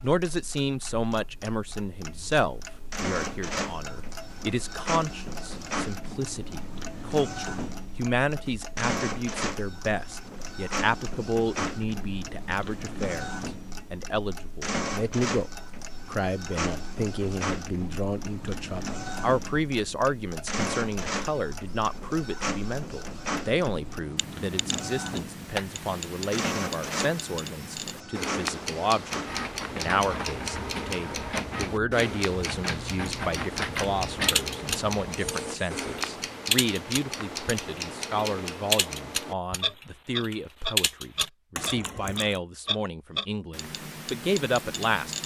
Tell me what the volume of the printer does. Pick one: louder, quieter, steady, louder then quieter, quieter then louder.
steady.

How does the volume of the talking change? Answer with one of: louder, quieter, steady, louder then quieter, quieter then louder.
steady.